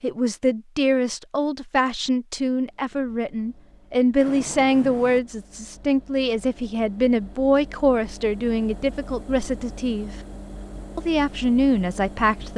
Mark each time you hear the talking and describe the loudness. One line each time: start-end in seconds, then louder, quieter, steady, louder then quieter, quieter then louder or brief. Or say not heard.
0.0-10.1 steady
10.9-12.5 brief.